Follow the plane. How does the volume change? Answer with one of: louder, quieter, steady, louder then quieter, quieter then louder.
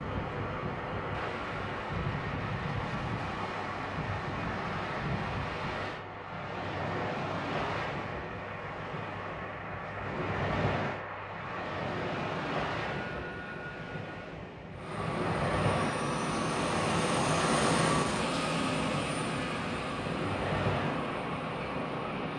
louder.